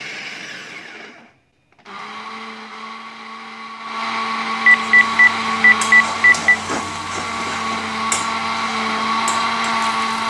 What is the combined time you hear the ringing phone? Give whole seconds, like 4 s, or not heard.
2 s.